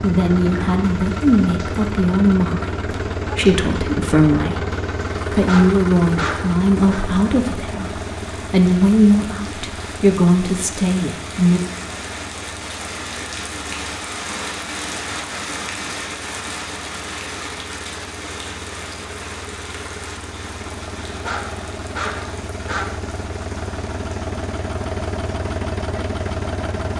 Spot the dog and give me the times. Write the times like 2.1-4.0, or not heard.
5.5-7.0, 21.2-23.1.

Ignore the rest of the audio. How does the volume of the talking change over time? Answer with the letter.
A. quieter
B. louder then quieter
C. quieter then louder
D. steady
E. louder
D.